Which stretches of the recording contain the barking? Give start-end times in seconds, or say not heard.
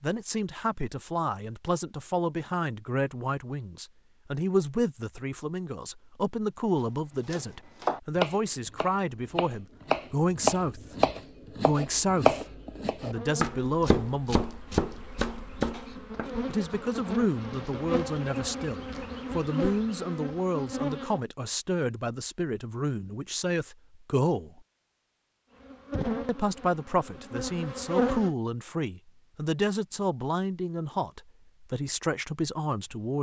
not heard.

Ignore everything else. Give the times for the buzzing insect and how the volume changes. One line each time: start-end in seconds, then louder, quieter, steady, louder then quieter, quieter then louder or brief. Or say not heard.
13.1-21.2 louder
25.6-28.3 brief.